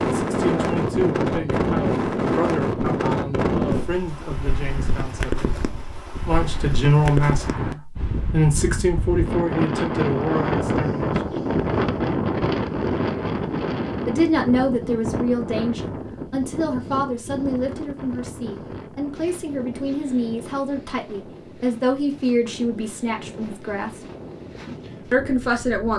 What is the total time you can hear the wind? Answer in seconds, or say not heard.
26 s.